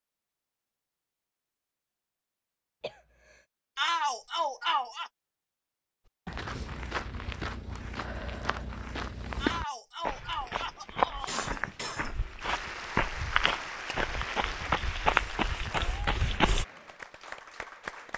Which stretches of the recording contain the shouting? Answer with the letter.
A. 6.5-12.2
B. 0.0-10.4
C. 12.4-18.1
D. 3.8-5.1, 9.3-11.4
D.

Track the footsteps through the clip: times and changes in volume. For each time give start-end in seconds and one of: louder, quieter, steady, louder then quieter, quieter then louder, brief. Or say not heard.
6.2-16.6 louder.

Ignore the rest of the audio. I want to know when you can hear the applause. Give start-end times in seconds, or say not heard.
12.4-18.1.